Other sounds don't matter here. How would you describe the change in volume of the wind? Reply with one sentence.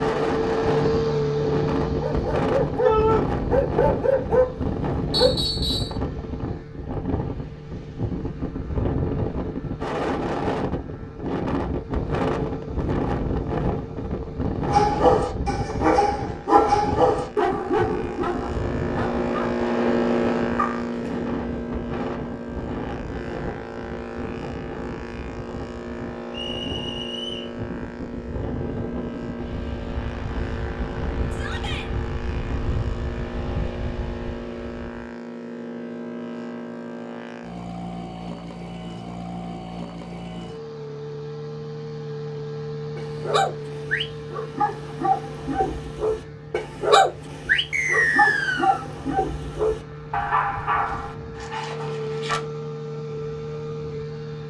The volume of the wind goes down.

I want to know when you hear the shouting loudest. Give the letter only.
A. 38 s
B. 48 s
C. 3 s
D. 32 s
C.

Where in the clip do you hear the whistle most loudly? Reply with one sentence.
The volume of the whistle peaks at 48 seconds.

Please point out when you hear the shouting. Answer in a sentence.
You can hear the shouting from 2.8 to 3.2 s and from 31.3 to 31.9 s.